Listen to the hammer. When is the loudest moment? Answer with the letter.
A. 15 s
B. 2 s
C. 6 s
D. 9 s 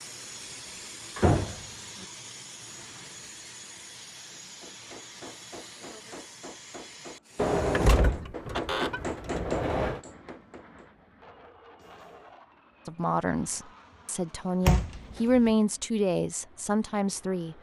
D.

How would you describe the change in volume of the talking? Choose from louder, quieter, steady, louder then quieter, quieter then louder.
louder then quieter.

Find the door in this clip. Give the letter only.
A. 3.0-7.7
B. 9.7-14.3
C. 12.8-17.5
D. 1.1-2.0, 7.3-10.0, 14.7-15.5
D.